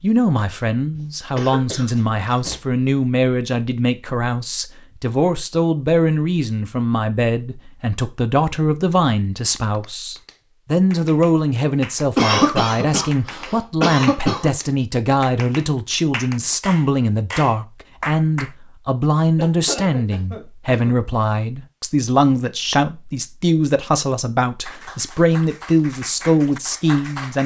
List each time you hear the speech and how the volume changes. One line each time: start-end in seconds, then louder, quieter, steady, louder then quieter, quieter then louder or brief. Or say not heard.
0.0-27.4 steady.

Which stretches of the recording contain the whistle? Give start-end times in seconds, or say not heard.
not heard.